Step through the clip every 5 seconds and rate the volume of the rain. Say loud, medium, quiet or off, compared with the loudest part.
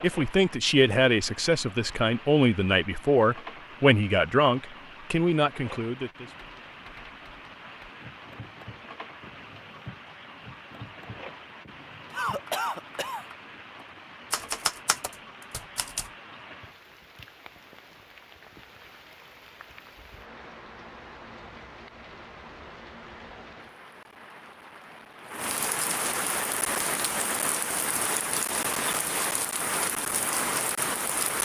quiet, quiet, quiet, quiet, quiet, loud, loud.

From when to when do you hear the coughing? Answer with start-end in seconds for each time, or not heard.
12.1-13.2.